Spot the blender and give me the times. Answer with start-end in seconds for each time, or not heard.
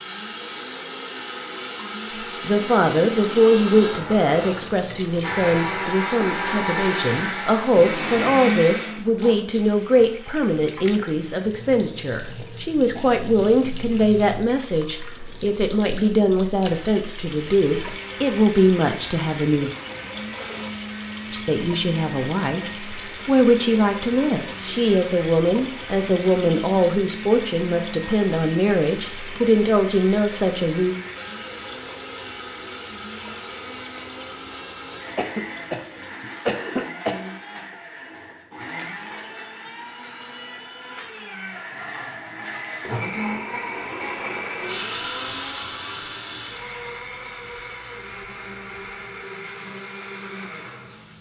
0.0-9.0, 17.4-51.1.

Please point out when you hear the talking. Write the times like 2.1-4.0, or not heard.
2.4-19.7, 21.3-30.9.